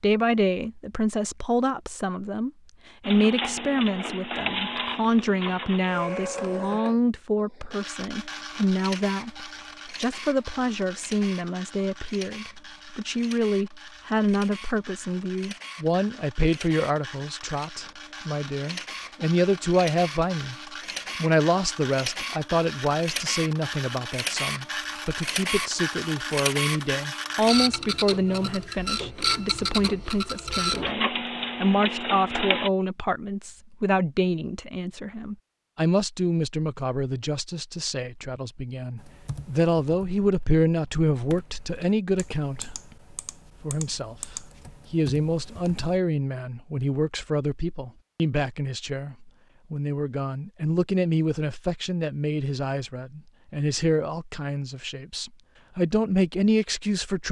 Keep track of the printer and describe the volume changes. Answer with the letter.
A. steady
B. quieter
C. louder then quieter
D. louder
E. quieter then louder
E.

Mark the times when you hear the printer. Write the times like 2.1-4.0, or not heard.
3.0-32.7.